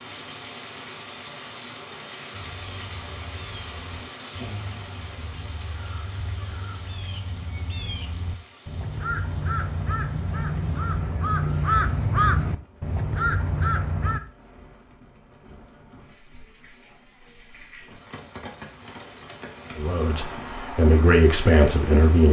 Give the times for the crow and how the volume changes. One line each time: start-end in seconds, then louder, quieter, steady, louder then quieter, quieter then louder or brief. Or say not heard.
2.3-14.2 louder.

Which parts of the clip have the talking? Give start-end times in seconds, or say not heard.
19.8-22.2.